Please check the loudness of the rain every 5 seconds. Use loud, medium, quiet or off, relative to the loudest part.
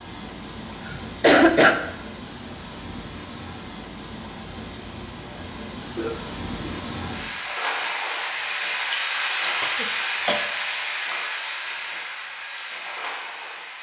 medium, loud, loud.